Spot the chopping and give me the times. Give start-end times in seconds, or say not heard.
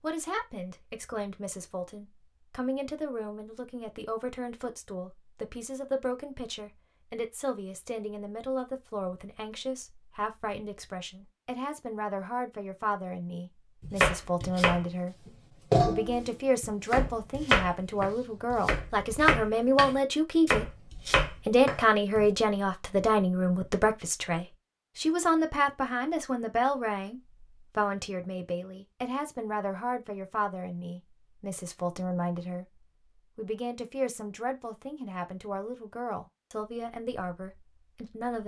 13.8-22.2.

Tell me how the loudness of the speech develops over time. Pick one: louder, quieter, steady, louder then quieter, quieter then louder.
louder then quieter.